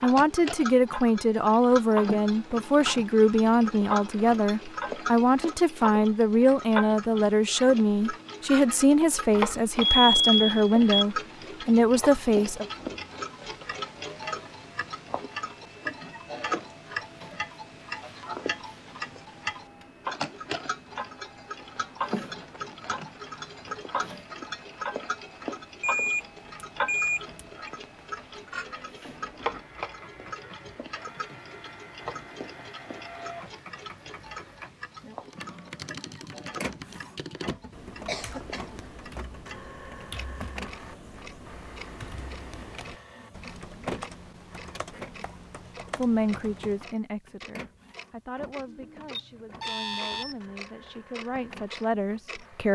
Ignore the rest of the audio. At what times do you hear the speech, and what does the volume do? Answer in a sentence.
The speech can be heard from 0.0 to 12.7 s, at a steady volume; and from 46.0 to 52.6 s, getting quieter then louder.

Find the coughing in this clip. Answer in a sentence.
The coughing can be heard from 38.0 to 38.9 s.